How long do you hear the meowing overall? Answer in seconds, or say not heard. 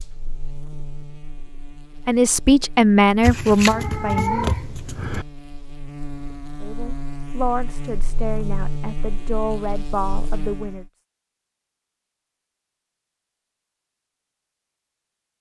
2 s.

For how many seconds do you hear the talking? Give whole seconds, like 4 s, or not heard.
7 s.